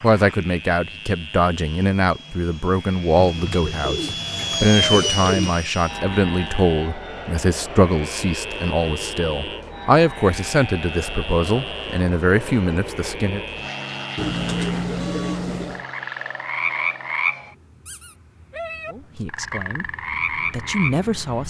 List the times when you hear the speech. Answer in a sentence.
You can hear the speech from 0.0 to 13.4 s and from 18.9 to 21.4 s.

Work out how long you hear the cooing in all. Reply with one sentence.
You can hear the cooing for 4 seconds altogether.